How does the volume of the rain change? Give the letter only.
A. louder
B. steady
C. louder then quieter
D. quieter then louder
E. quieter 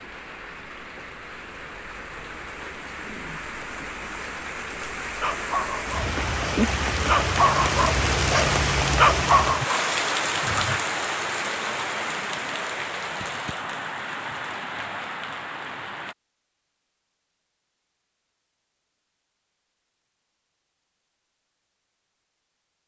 C.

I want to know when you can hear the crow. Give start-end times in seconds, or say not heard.
not heard.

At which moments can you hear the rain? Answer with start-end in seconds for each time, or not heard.
0.0-16.1.